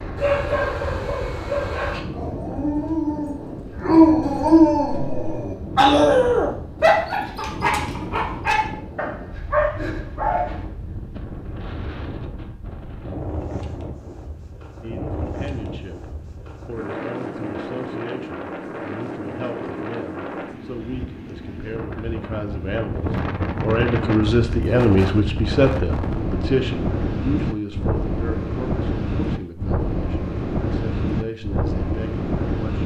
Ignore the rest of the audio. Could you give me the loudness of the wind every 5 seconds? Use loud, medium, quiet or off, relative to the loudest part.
medium, medium, medium, medium, loud, loud, loud.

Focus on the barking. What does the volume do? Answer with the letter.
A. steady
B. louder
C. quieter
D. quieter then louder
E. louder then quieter
E.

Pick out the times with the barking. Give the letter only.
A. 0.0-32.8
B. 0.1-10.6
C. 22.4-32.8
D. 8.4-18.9
B.